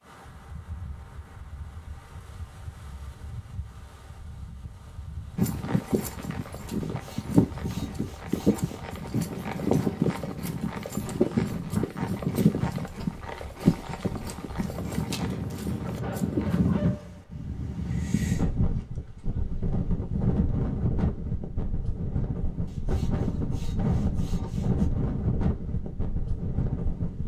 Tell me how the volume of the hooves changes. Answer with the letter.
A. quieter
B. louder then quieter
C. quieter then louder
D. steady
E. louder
A.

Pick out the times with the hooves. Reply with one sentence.
You can hear the hooves from 5.3 to 16.7 s.